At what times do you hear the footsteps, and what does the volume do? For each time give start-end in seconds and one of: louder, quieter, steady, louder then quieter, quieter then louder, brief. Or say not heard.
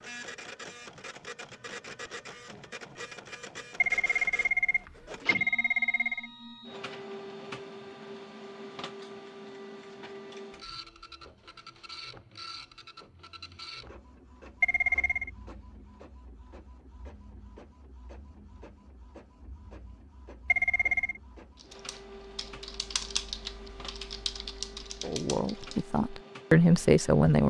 not heard.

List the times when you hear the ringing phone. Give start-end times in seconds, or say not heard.
3.8-6.3, 14.6-15.3, 20.4-21.2.